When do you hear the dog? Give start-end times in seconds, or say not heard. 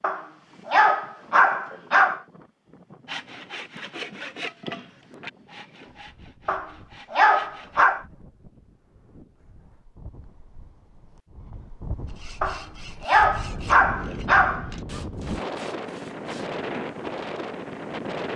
0.0-2.2, 6.5-8.1, 12.4-14.7.